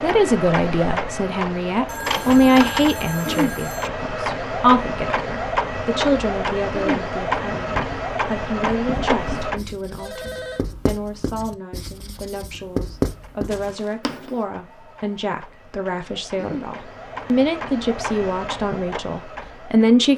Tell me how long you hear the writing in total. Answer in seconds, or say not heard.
7 s.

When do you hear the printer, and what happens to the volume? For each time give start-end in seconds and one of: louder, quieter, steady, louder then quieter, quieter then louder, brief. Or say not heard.
0.0-9.6 steady
12.9-20.1 louder.